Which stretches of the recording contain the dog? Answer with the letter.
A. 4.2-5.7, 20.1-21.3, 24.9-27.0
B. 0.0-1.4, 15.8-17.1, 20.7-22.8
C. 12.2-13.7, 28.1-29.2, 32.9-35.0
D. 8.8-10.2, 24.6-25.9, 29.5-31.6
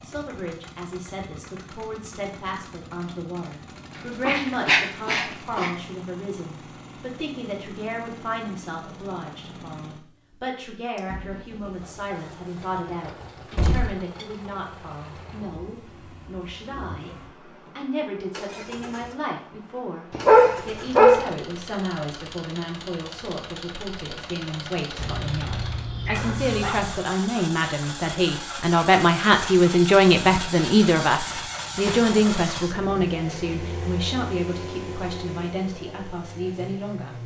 A.